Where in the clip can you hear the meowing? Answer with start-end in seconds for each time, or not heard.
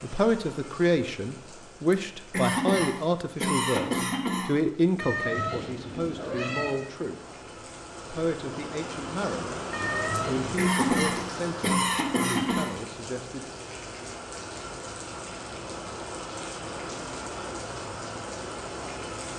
5.0-6.8, 9.7-10.5.